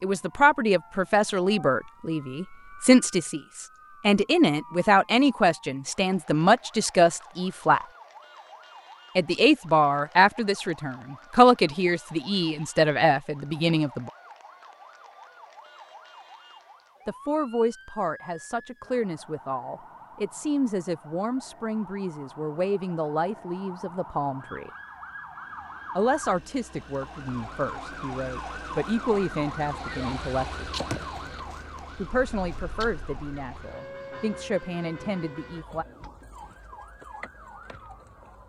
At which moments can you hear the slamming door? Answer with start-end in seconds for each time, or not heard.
not heard.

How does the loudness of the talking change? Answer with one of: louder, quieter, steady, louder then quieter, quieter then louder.
quieter.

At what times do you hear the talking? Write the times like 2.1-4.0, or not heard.
0.0-7.8, 9.2-14.1, 17.1-24.7, 25.9-30.7, 31.9-35.9.